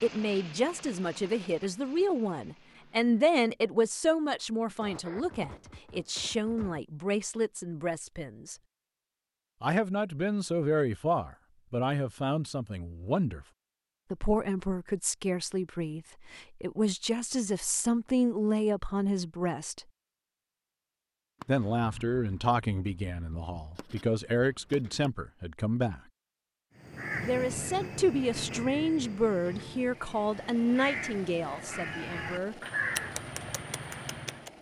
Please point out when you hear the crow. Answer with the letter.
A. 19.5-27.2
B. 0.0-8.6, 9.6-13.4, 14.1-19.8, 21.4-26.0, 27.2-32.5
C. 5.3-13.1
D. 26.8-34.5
D.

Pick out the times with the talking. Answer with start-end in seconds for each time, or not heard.
0.0-8.6, 9.6-13.4, 14.1-19.8, 21.4-26.0, 27.2-32.5.